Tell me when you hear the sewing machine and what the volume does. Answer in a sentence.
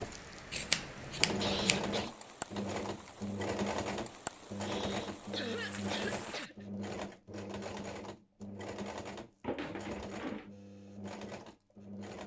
You can hear the sewing machine from 0.0 to 12.2 s, getting quieter.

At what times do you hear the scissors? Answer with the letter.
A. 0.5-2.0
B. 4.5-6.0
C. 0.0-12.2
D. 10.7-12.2
A.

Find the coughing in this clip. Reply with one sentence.
You can hear the coughing from 1.4 to 2.1 s, from 4.6 to 6.7 s and from 9.4 to 10.5 s.